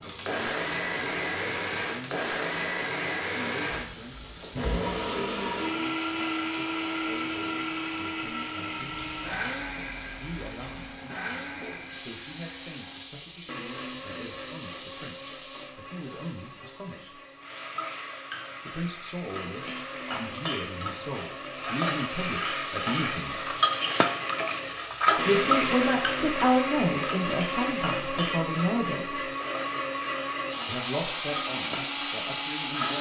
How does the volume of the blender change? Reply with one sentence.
The volume of the blender goes down, then up.